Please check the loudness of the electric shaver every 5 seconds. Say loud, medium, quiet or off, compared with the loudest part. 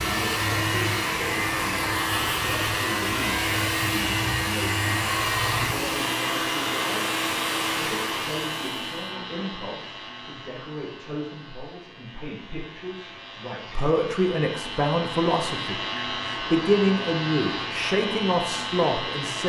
loud, loud, medium, loud.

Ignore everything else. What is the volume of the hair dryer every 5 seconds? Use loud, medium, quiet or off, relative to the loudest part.
loud, loud, off, off.